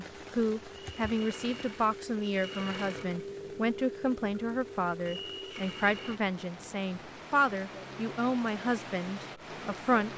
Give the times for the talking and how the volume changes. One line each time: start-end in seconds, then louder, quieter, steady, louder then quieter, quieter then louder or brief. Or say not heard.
0.0-10.1 steady.